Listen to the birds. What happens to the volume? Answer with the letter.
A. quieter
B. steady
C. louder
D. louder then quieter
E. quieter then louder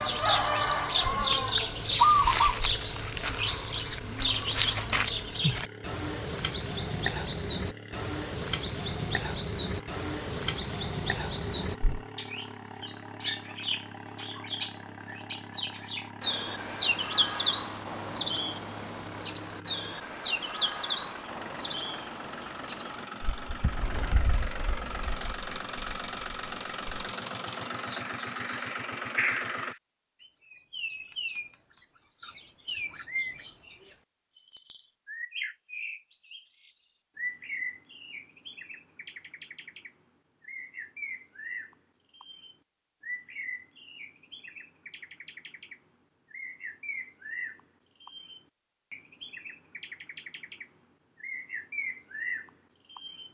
A.